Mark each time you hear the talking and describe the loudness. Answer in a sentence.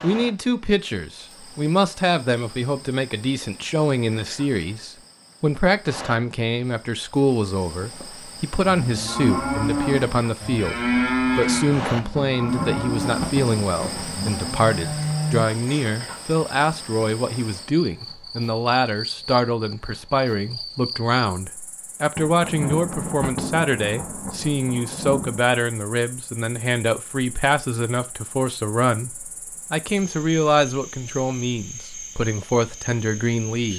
The talking can be heard from 0.0 to 33.7 s, at a steady volume.